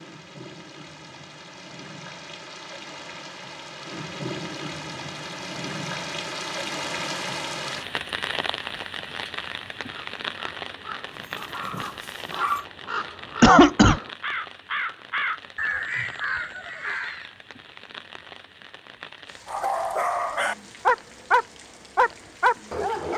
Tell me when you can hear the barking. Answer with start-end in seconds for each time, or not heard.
11.1-12.7, 19.4-23.1.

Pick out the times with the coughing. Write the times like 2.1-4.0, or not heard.
13.4-14.0.